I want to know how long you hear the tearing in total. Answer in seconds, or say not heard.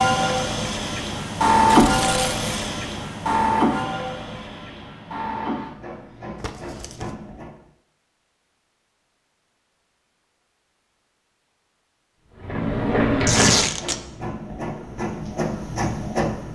2 s.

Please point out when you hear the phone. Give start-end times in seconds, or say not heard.
not heard.